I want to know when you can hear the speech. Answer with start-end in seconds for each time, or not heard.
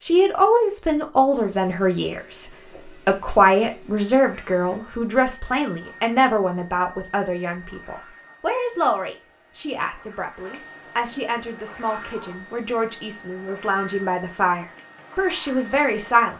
0.0-16.3.